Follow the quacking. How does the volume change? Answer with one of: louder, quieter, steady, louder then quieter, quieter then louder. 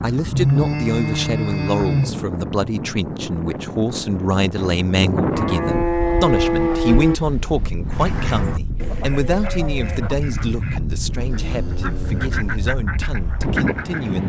quieter then louder.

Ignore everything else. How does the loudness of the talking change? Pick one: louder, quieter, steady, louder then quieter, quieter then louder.
quieter.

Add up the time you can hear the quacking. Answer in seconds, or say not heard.
6 s.